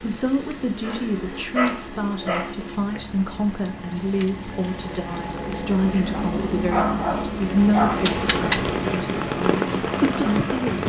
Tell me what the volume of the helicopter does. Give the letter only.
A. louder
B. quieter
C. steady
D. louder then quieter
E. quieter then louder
A.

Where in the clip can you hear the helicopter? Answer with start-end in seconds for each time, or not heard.
0.0-10.7.